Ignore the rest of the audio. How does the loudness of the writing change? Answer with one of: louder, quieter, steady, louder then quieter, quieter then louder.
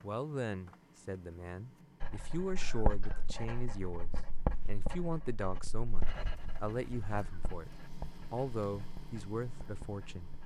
quieter.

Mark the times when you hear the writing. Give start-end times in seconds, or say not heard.
2.0-10.4.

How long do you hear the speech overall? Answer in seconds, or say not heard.
10 s.